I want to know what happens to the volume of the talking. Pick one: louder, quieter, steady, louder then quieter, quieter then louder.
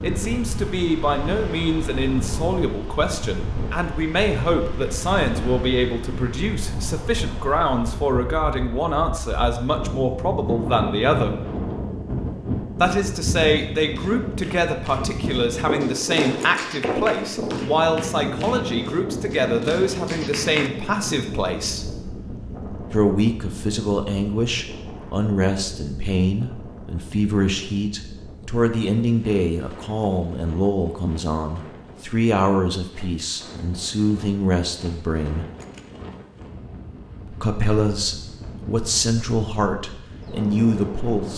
steady.